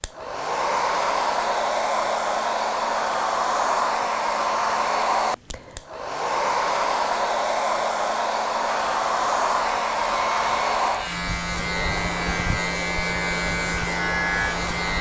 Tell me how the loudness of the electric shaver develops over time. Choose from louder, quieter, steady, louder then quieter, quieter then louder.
louder.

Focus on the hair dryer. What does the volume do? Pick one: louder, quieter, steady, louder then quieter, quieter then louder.
quieter.